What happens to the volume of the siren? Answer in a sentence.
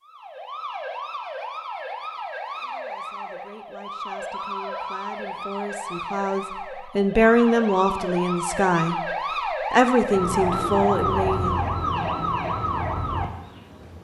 The volume of the siren goes up.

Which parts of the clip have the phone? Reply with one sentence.
You can hear the phone from 4.3 to 5.5 s.